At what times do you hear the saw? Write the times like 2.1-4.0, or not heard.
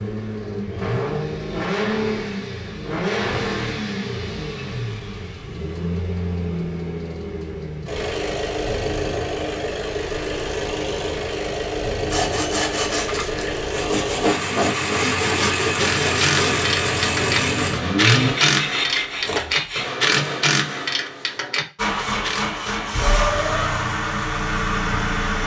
12.1-19.9.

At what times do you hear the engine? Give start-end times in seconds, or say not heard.
0.0-18.4, 21.8-25.4.